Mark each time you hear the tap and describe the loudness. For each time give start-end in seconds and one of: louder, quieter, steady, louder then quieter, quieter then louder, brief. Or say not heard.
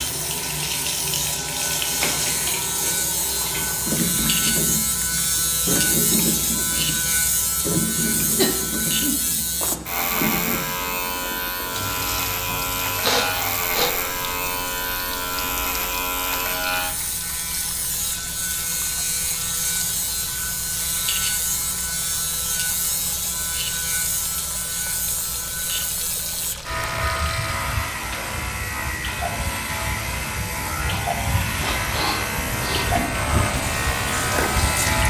0.0-35.0 quieter then louder.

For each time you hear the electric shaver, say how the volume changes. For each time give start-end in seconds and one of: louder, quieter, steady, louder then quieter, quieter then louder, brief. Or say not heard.
0.0-35.0 steady.